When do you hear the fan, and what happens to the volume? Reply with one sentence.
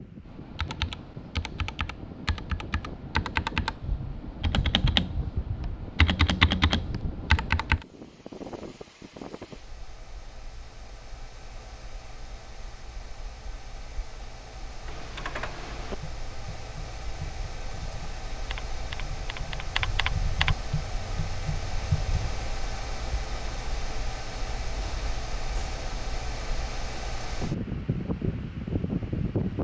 You can hear the fan from 0.0 to 29.5 s, getting louder.